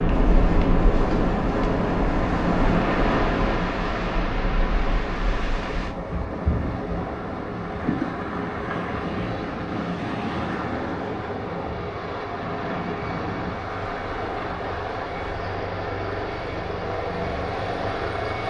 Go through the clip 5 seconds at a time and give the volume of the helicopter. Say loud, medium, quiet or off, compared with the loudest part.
medium, medium, loud, loud.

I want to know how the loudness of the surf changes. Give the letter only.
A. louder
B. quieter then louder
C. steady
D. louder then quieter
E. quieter
E.